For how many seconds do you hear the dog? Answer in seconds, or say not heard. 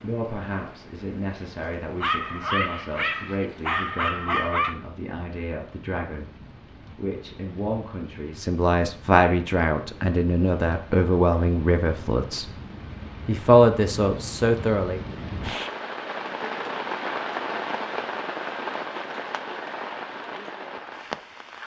3 s.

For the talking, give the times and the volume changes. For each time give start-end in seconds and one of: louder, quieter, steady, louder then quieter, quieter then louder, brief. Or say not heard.
0.0-12.5 louder
13.2-15.0 brief.